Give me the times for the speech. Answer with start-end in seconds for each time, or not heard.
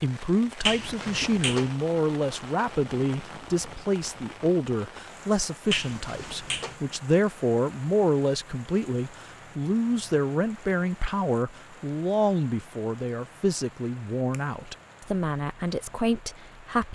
0.0-16.9.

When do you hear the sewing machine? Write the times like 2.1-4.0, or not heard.
not heard.